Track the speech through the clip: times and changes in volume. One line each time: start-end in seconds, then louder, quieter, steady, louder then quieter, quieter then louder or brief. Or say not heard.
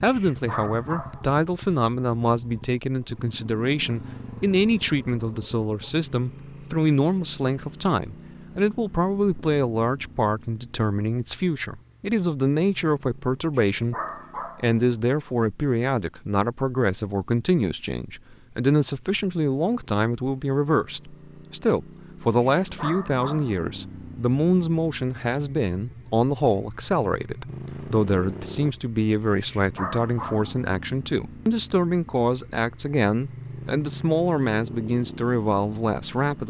0.0-13.9 steady
14.6-36.4 steady.